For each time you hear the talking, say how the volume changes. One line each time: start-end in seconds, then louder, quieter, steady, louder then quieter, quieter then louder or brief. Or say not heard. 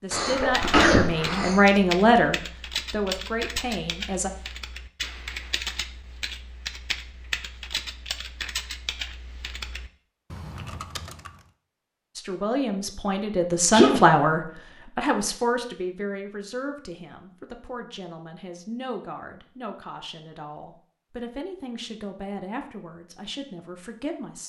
0.0-4.3 louder then quieter
12.2-24.4 quieter.